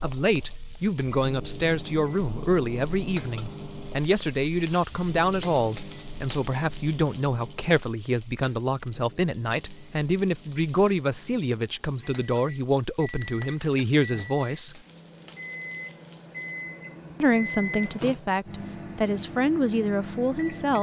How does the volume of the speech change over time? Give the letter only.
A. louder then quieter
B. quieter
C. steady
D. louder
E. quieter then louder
C.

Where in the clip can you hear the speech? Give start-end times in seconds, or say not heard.
0.0-14.8, 17.2-20.7.